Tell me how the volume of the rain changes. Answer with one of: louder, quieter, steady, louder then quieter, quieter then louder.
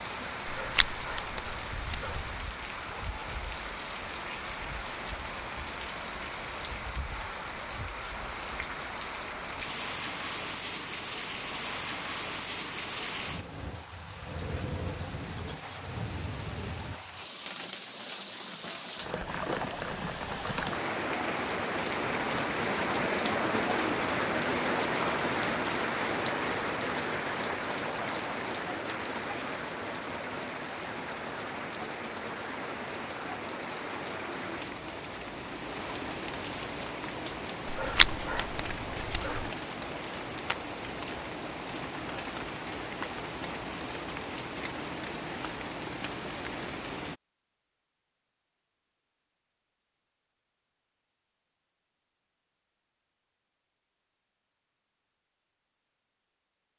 louder then quieter.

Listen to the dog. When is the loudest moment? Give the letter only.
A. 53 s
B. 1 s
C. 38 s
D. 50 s
C.